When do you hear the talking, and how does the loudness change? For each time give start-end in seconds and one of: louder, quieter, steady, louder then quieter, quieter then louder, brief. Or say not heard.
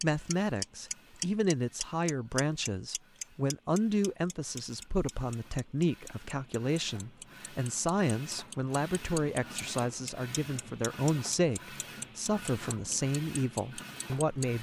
0.0-14.5 steady.